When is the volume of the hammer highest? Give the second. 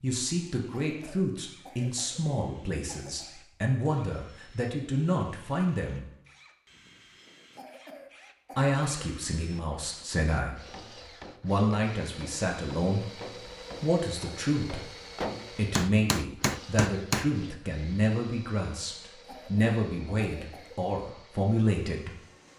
17 s.